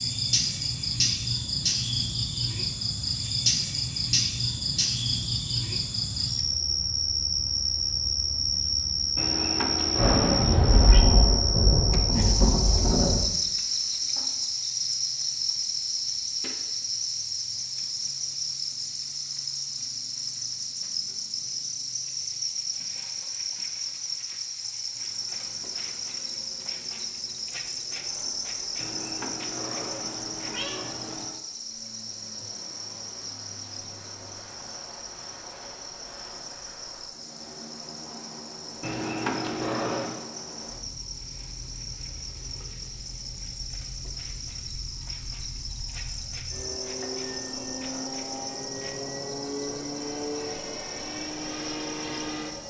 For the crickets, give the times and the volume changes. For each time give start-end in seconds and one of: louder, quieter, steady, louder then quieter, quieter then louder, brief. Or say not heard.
0.0-52.6 quieter.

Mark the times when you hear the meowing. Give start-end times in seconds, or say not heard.
9.2-11.0, 28.8-31.4, 38.8-40.2.